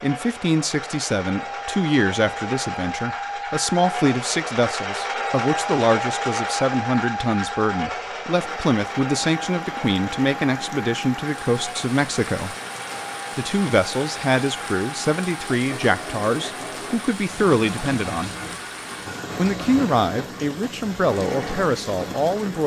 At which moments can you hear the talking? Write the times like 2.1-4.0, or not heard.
0.0-12.6, 13.3-18.3, 19.4-22.6.